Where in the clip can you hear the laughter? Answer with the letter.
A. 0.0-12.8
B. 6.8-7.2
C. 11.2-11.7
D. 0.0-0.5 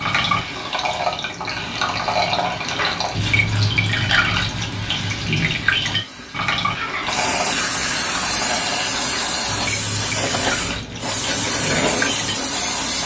B.